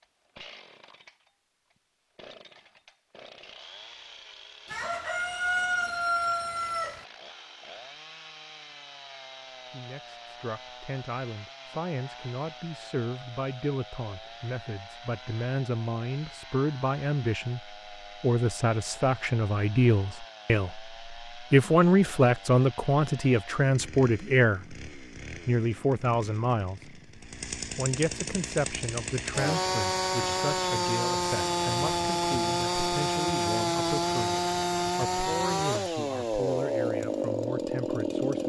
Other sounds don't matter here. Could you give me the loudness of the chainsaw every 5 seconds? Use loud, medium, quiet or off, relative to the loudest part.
quiet, quiet, quiet, quiet, quiet, medium, loud, loud.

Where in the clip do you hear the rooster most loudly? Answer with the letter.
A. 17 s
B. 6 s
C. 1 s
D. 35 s
B.